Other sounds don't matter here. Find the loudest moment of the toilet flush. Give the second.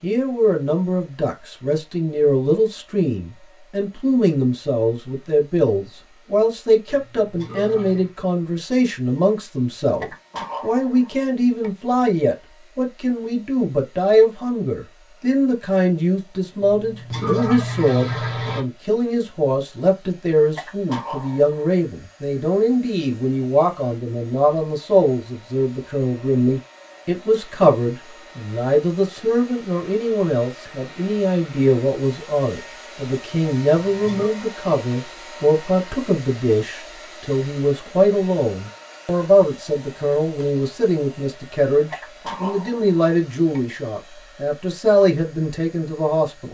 18 s.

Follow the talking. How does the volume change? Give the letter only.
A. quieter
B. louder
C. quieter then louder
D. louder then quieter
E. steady
E.